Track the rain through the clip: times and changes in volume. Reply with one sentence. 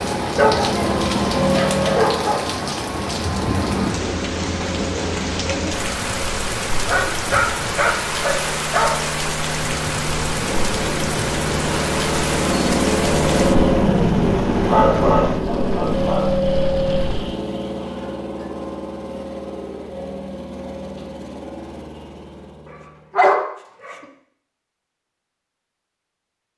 The rain can be heard from 0.0 to 17.4 s, getting quieter.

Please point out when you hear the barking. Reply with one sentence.
You can hear the barking from 0.3 to 2.5 s, from 6.8 to 9.1 s, from 14.7 to 16.3 s and from 22.6 to 24.1 s.